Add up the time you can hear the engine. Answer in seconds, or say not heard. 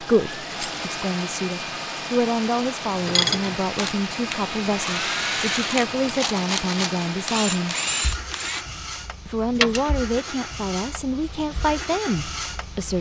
13 s.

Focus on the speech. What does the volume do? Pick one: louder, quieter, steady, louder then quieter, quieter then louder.
steady.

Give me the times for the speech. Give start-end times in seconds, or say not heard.
0.0-7.8, 9.2-12.9.